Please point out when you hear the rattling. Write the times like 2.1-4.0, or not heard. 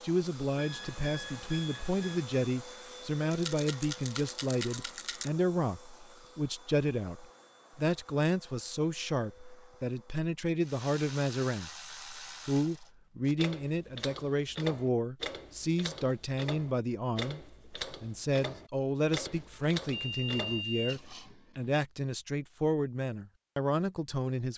3.3-5.3.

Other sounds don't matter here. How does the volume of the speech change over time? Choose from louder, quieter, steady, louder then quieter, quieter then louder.
steady.